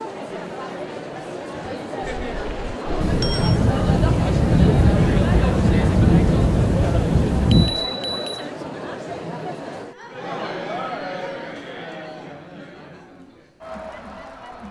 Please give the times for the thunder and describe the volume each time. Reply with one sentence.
You can hear the thunder from 3.0 to 7.8 s, at a steady volume.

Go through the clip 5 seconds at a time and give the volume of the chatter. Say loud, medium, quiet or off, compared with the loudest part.
loud, loud, medium.